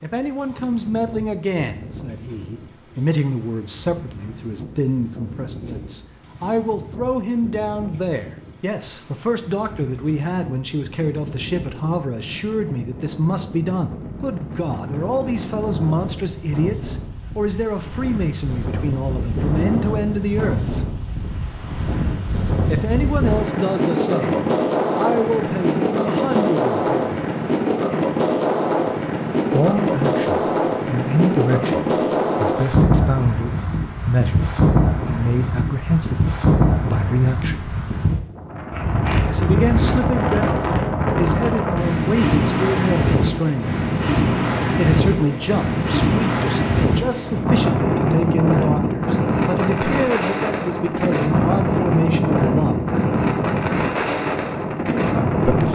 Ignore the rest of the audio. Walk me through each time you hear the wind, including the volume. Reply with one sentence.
You can hear the wind from 0.0 to 55.7 s, getting louder.